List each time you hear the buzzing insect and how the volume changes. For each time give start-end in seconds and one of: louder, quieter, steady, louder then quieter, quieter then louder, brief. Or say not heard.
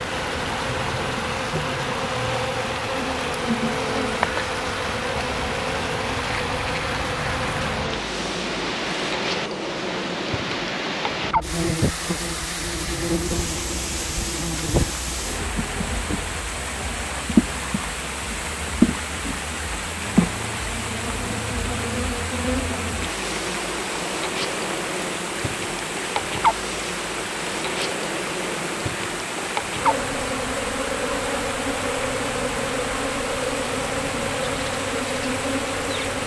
0.0-36.2 steady.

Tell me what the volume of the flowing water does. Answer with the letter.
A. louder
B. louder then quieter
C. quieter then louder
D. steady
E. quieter
D.